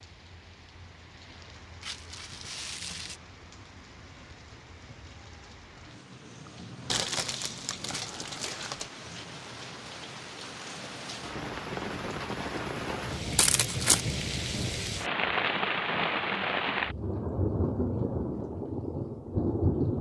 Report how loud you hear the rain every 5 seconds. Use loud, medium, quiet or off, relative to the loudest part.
quiet, quiet, medium, loud.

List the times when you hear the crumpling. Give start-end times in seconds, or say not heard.
1.8-3.2, 6.8-8.9, 13.3-14.0.